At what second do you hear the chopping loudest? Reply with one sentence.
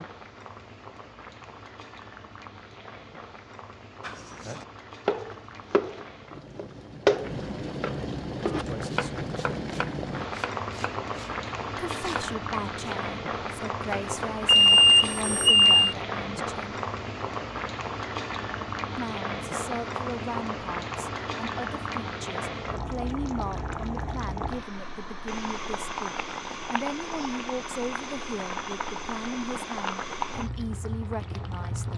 The volume of the chopping peaks at 7 seconds.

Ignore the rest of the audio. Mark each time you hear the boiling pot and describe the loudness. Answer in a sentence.
You can hear the boiling pot from 0.0 to 31.9 s, getting louder.